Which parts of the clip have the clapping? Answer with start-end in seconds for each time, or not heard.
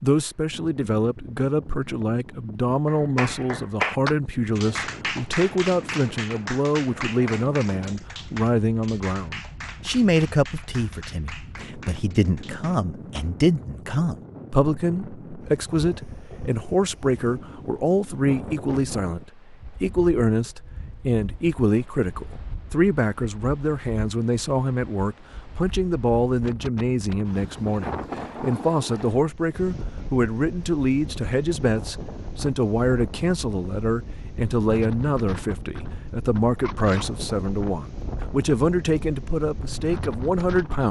2.9-13.3.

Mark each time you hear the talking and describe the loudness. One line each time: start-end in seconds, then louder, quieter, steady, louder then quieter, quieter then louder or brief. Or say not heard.
0.0-40.8 steady.